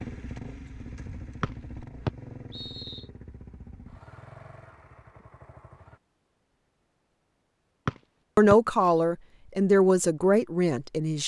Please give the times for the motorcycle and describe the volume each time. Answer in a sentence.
You can hear the motorcycle from 0.0 to 6.0 s, getting quieter.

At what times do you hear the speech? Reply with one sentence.
The speech can be heard from 8.3 to 11.2 s.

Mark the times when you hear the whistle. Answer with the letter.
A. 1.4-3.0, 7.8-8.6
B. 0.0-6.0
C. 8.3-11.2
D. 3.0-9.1
A.